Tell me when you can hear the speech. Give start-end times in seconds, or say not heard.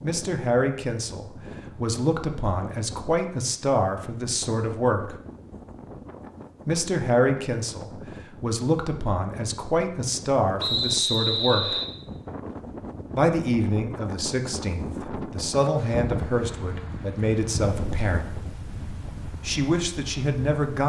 0.0-5.2, 6.7-11.8, 13.2-18.4, 19.4-20.8.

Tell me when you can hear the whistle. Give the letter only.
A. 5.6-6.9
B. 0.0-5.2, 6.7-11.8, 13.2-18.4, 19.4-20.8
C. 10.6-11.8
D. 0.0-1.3
C.